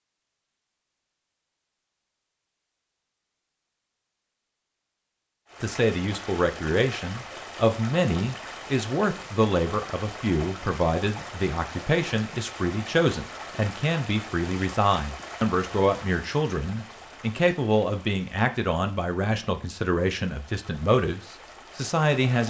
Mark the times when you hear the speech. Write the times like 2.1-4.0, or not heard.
5.6-22.4.